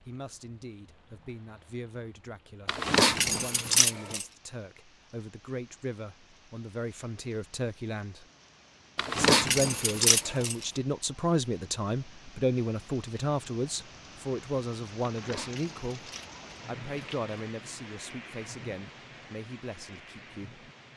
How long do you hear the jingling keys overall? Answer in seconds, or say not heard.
6 s.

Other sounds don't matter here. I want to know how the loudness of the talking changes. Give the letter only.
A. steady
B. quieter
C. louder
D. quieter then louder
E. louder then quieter
E.